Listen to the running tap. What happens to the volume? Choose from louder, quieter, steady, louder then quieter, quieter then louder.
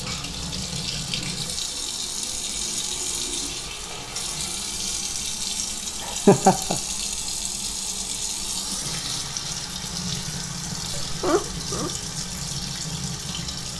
steady.